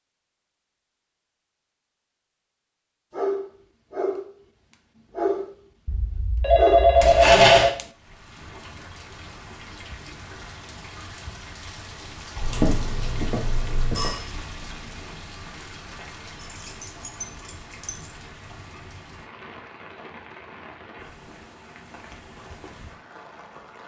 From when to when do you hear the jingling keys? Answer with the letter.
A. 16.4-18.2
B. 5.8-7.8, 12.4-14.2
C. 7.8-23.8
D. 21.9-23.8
A.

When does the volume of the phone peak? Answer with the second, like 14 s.
7 s.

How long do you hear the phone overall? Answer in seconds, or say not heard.
4 s.